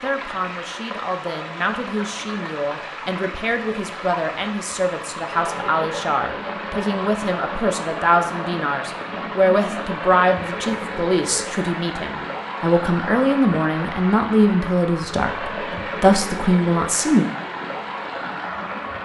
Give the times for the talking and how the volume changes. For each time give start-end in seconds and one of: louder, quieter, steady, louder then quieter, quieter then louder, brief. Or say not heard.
0.0-17.3 louder.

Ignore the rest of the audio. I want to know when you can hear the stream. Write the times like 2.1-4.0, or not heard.
0.0-19.0.